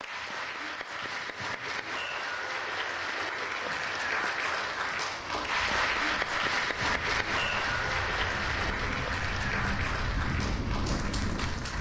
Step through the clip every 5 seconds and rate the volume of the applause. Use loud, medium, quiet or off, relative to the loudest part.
loud, loud, medium.